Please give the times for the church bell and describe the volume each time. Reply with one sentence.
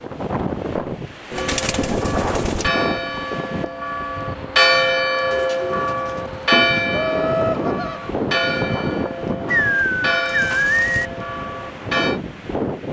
The church bell can be heard from 1.3 to 12.2 s, getting louder then quieter.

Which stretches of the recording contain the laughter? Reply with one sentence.
You can hear the laughter from 6.9 to 8.1 s.